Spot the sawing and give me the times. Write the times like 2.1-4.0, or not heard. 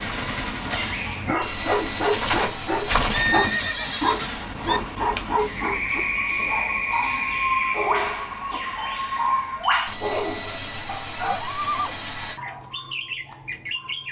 1.4-3.4, 9.8-12.4.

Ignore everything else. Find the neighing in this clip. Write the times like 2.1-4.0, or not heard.
3.1-4.8, 11.2-12.0.